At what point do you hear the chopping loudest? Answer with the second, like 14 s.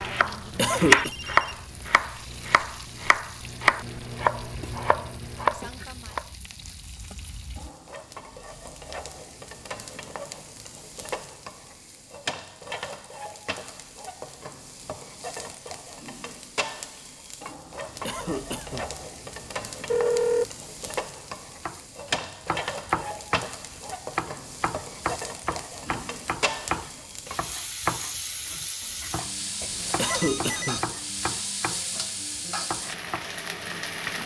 1 s.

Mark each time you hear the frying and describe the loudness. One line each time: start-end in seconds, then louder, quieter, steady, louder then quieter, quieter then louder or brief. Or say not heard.
0.1-34.2 louder.